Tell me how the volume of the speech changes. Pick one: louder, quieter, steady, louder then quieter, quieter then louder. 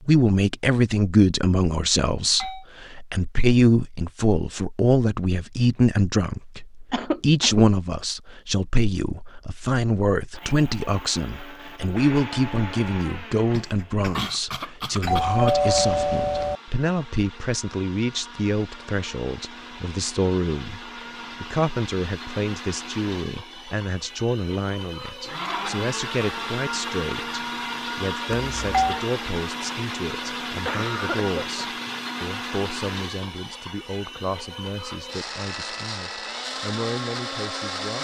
quieter.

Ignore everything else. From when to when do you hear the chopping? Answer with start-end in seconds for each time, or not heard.
not heard.